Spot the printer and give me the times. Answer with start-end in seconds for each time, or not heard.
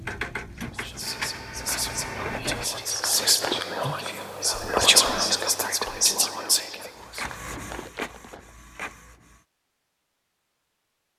0.0-2.6, 6.9-9.4.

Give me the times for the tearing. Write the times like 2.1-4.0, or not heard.
2.6-3.6, 6.8-8.5.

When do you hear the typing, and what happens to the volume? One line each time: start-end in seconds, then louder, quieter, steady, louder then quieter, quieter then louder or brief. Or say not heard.
not heard.